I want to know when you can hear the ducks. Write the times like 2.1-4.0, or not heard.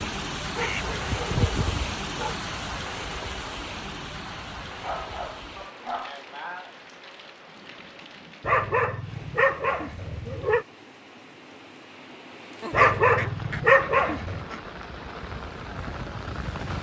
0.6-1.9, 12.6-14.6.